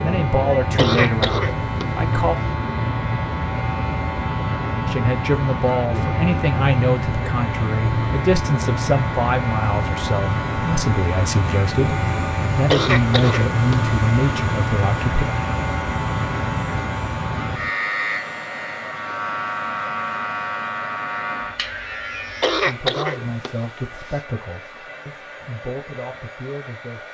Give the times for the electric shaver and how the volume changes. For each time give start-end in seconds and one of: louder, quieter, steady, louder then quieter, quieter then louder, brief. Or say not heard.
0.0-22.8 steady.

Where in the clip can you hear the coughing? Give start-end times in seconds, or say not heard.
0.8-2.1, 12.7-13.8, 22.4-24.2.